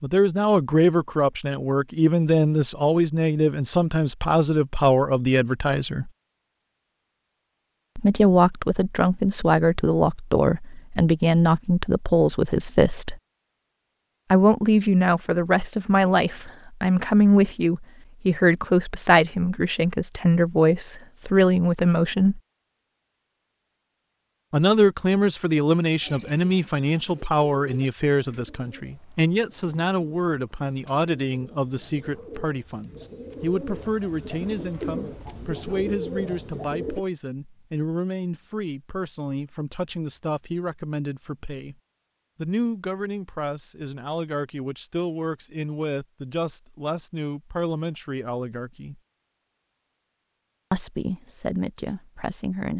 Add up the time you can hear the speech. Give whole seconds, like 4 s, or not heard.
45 s.